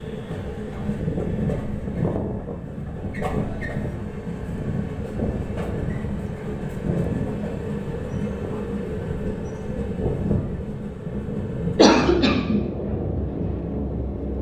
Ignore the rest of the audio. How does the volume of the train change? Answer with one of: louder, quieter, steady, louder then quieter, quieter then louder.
steady.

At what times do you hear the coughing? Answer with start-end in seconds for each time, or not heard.
11.8-12.6.